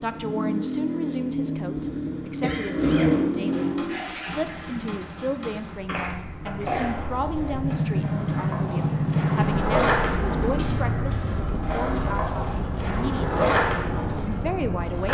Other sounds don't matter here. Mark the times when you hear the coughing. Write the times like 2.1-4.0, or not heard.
1.8-3.1, 5.8-7.0, 10.6-11.3.